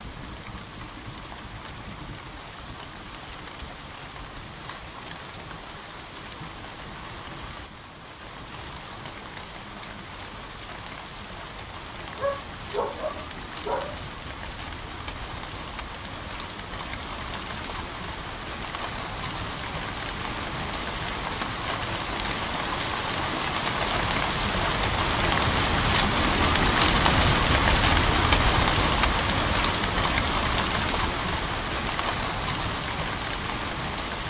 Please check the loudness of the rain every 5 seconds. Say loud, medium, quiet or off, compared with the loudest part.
quiet, quiet, quiet, quiet, medium, loud, medium.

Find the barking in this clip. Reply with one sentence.
The barking can be heard from 12.2 to 14.0 s.